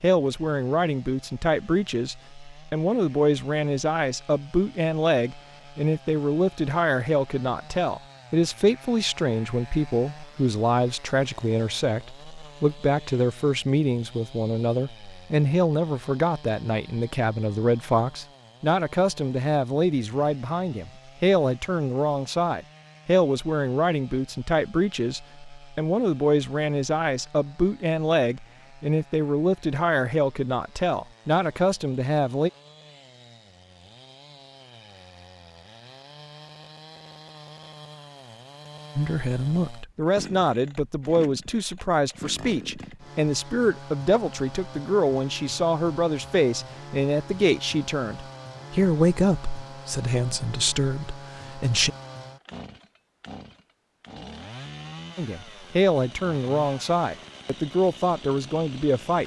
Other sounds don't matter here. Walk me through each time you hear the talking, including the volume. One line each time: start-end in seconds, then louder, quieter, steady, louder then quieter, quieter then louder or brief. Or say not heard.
0.0-32.5 steady
39.0-51.9 steady
55.1-59.2 quieter.